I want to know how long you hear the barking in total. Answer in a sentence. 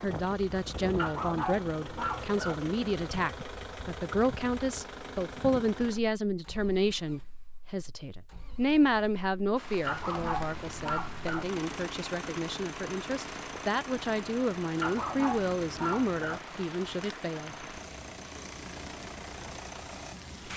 You can hear the barking for 5 seconds altogether.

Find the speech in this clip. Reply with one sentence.
The speech can be heard from 0.0 to 17.6 s.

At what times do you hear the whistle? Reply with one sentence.
You can't hear the whistle here.